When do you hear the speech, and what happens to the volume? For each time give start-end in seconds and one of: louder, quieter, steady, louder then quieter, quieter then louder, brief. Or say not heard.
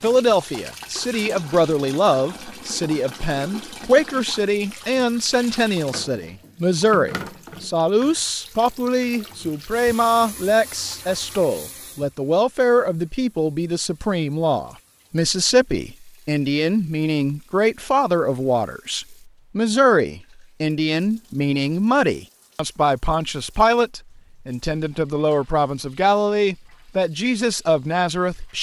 0.0-28.5 steady.